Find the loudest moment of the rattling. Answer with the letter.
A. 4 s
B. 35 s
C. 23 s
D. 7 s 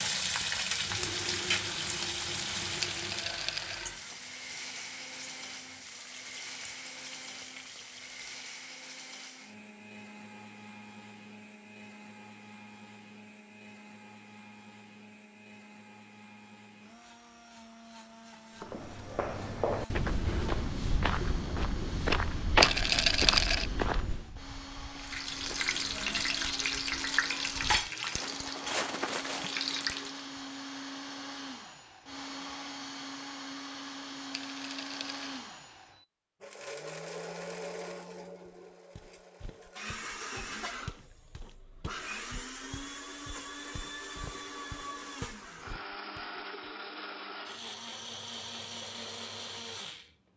C.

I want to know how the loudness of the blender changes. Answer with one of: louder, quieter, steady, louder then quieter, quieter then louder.
quieter then louder.